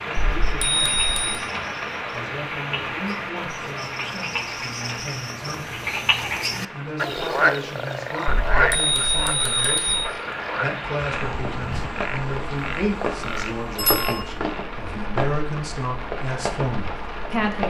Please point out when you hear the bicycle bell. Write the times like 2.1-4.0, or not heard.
0.2-1.4, 8.3-10.0, 13.8-14.2.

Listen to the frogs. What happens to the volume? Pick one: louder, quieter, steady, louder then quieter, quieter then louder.
louder then quieter.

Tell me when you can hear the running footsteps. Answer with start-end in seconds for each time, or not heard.
not heard.